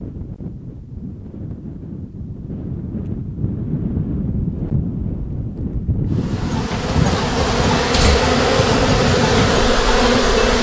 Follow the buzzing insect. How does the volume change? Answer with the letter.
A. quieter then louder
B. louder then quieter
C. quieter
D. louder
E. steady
D.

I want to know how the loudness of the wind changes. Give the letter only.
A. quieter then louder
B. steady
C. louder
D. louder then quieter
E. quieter
C.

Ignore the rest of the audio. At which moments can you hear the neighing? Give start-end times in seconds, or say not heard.
6.8-8.3.